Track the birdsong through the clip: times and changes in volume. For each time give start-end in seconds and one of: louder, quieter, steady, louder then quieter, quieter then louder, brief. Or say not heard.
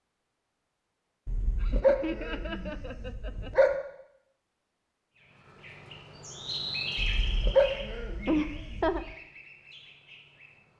5.2-10.7 louder then quieter.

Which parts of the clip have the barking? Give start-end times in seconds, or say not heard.
1.2-3.7, 7.0-9.0.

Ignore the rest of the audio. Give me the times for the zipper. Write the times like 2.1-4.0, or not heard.
not heard.